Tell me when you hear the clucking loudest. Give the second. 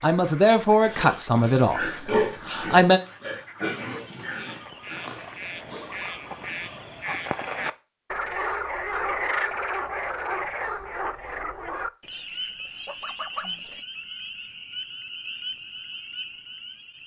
13 s.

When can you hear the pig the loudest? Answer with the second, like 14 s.
2 s.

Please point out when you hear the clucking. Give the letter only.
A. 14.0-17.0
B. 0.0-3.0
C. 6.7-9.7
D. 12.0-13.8
D.